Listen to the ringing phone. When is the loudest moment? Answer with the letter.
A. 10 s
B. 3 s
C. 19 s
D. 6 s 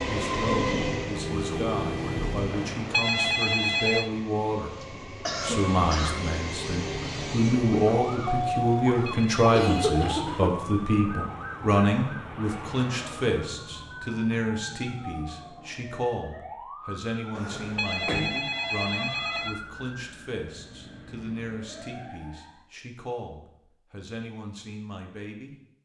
B.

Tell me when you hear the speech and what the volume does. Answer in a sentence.
The speech can be heard from 0.0 to 25.6 s, getting louder then quieter.